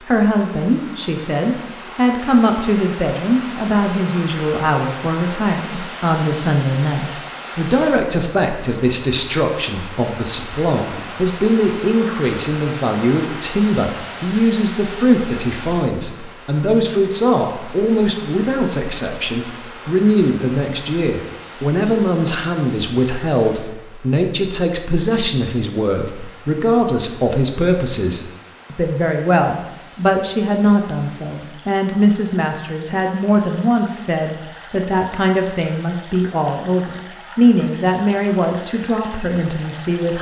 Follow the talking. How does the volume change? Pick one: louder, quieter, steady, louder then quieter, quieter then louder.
steady.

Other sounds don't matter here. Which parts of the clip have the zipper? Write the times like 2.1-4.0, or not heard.
not heard.